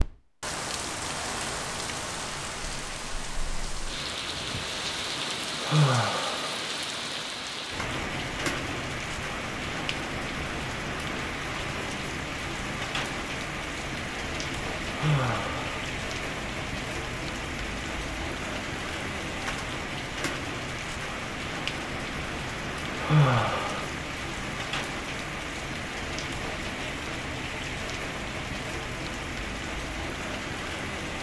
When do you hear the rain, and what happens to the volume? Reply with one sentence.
You can hear the rain from 0.0 to 31.1 s, at a steady volume.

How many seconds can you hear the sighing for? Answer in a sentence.
You can hear the sighing for 3 seconds altogether.